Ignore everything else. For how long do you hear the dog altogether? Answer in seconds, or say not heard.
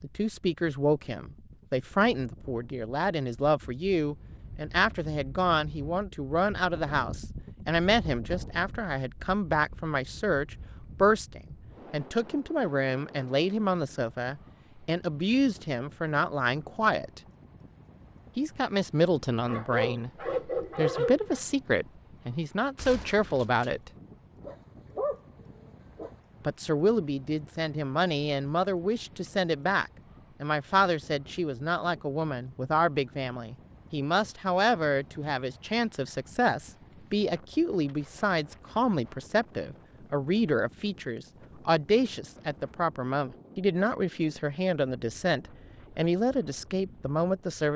4 s.